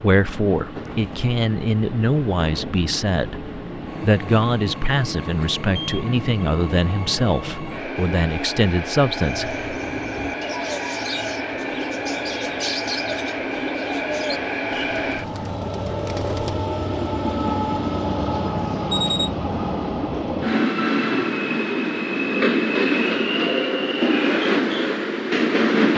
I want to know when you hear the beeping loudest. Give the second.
19 s.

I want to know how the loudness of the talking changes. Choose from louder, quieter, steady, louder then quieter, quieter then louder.
steady.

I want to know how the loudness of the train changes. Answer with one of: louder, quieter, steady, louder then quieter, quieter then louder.
louder.